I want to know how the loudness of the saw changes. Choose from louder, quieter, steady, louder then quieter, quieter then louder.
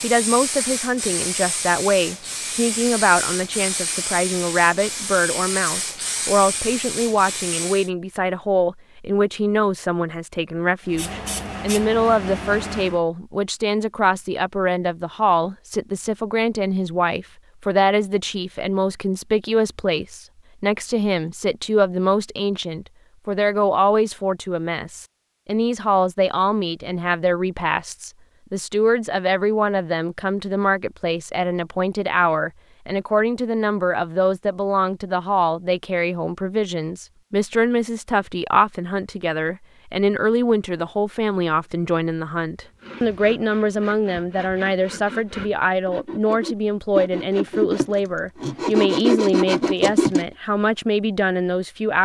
louder.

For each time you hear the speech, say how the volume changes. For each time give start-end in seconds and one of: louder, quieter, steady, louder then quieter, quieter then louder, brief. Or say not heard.
0.0-52.0 steady.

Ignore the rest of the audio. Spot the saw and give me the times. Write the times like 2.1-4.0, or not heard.
42.6-50.2.